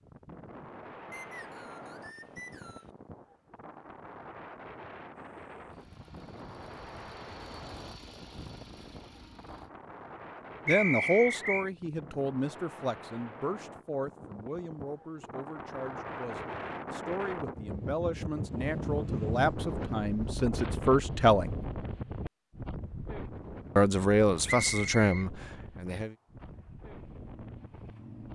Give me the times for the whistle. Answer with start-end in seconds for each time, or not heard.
1.1-2.9, 10.7-11.7, 24.4-25.2.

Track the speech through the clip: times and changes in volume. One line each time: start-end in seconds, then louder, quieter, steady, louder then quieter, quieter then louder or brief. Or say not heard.
10.7-21.6 quieter then louder
23.8-26.1 brief.